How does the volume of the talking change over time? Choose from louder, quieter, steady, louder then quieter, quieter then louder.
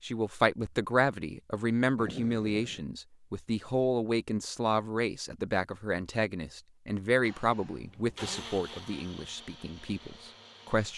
quieter.